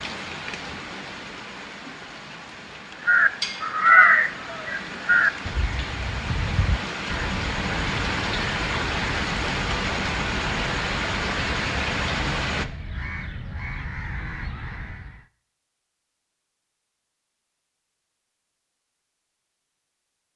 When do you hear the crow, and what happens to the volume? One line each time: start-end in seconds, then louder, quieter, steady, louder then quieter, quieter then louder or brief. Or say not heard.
3.0-15.2 quieter.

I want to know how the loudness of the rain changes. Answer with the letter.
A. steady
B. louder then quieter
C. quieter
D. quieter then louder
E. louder
E.